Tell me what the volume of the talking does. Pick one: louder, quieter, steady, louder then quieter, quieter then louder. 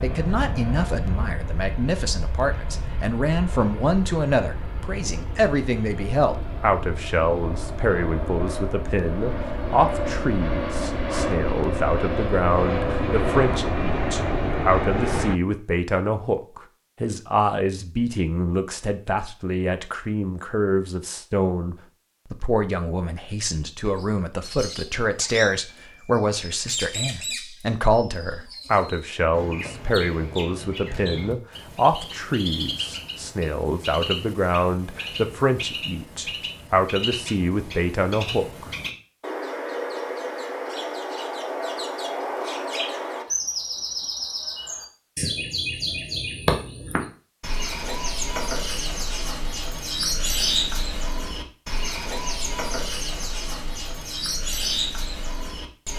steady.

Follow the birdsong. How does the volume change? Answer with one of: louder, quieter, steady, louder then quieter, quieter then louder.
louder.